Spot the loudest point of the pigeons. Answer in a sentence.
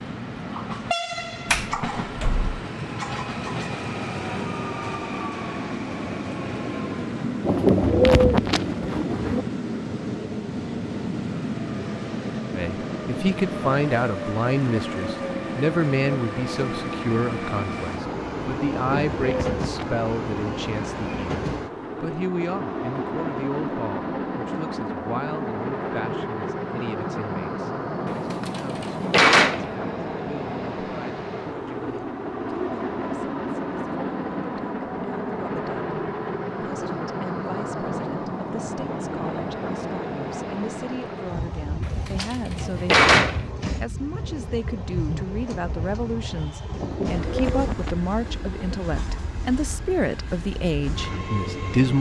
The loudest moment of the pigeons is at 8 seconds.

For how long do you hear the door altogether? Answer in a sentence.
You can hear the door for 4 seconds altogether.